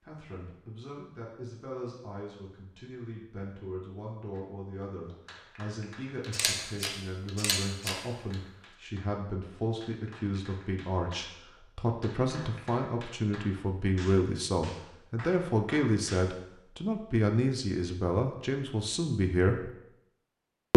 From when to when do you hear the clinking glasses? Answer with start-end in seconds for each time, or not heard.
not heard.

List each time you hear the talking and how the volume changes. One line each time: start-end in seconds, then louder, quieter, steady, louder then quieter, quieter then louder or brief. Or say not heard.
0.0-19.7 louder.